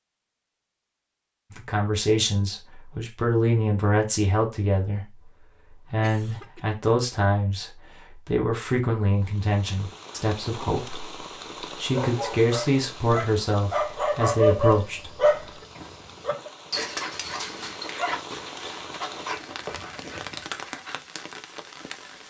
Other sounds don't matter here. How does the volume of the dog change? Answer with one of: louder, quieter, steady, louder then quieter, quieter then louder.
louder then quieter.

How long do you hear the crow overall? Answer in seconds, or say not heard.
not heard.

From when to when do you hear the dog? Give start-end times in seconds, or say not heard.
11.9-20.9.